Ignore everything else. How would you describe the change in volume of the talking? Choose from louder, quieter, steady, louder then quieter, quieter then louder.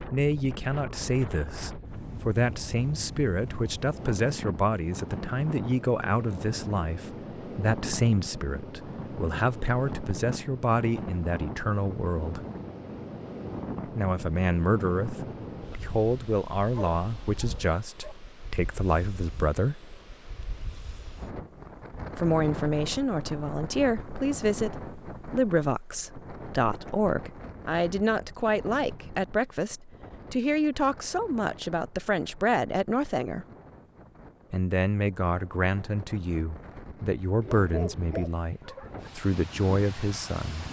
steady.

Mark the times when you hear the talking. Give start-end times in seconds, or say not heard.
0.0-12.4, 13.8-19.8, 22.1-33.5, 34.5-40.6.